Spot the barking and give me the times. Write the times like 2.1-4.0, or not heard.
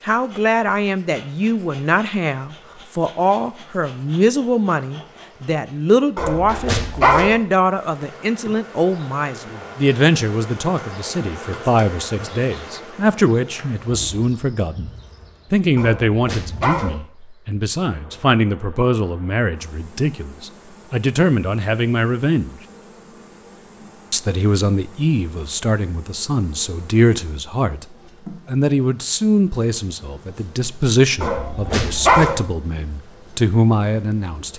6.2-7.3, 15.8-16.9, 31.2-32.4.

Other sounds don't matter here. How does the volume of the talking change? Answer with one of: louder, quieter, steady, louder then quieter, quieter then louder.
steady.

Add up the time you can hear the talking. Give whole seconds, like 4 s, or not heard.
32 s.